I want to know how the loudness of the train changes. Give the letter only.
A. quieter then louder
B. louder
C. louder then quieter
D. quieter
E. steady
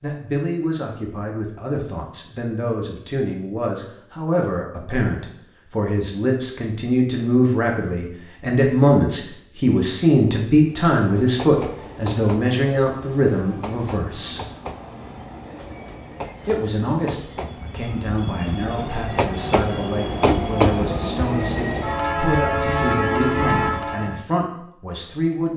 B.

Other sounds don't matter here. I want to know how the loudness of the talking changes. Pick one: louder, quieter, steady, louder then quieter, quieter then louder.
louder then quieter.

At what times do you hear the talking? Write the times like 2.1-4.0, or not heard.
0.0-14.4, 16.4-25.5.